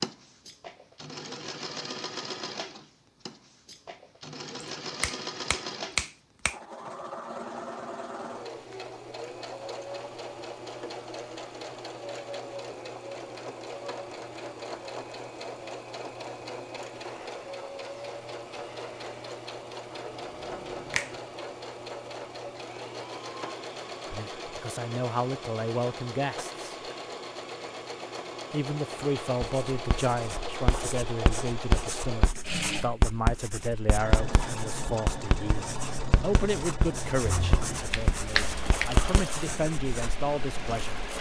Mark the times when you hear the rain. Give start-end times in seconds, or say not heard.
not heard.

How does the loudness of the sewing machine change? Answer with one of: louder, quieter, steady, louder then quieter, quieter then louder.
steady.